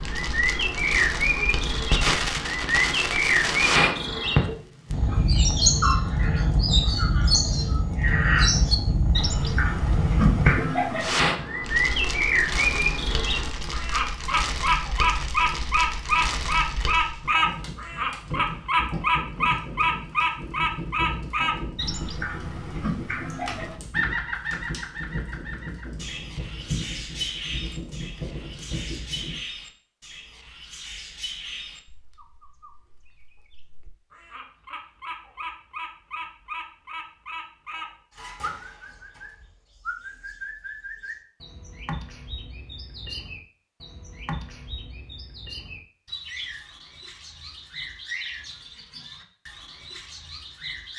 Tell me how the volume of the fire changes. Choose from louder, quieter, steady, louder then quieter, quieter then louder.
quieter.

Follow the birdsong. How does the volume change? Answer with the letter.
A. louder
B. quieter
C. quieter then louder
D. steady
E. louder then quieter
B.